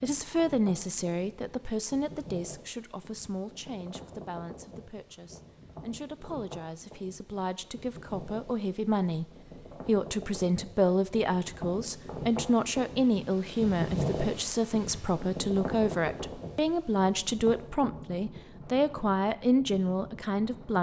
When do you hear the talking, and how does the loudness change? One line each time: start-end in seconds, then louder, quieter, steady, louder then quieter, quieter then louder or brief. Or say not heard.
0.0-9.2 quieter then louder
9.8-20.7 steady.